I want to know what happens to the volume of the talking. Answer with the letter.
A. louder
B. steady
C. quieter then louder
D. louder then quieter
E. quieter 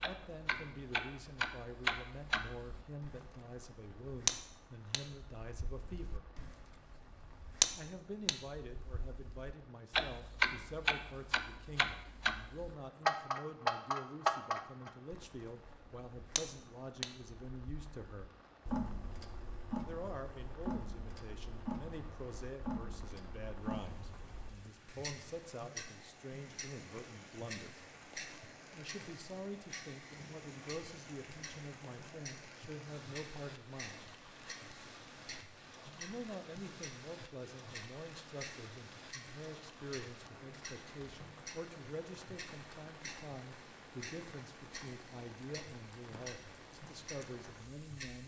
B.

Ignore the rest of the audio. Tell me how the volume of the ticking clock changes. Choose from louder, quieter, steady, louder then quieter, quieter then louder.
quieter.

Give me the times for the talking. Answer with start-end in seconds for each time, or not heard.
0.0-6.2, 7.8-18.4, 19.9-27.8, 28.7-34.0, 36.0-48.2.